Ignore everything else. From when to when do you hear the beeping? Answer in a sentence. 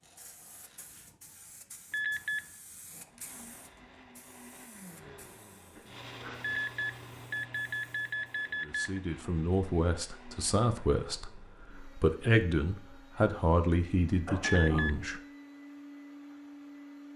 The beeping can be heard from 1.9 to 2.4 s, from 6.4 to 9.0 s and from 14.4 to 14.9 s.